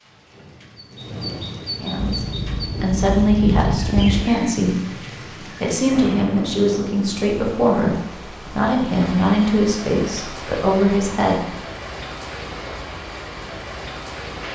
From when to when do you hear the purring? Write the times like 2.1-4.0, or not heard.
1.9-4.4.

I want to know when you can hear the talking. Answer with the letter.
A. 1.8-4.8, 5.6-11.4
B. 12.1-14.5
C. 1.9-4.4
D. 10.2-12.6
A.